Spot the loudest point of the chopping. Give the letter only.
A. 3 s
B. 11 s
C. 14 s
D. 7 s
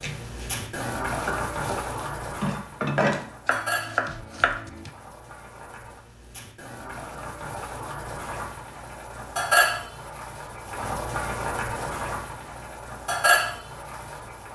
A.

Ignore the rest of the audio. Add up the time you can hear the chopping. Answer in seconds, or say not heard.
5 s.